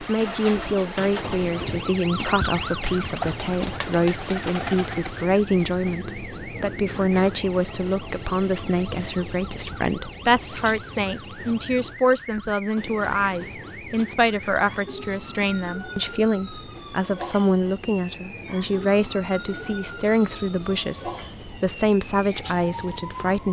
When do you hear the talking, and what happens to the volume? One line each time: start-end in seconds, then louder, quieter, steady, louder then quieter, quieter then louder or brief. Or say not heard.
0.0-23.4 steady.